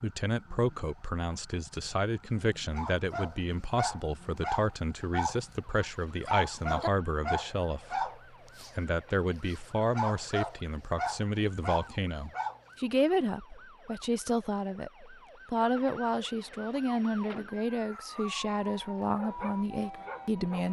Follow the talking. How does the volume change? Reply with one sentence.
The volume of the talking stays about the same.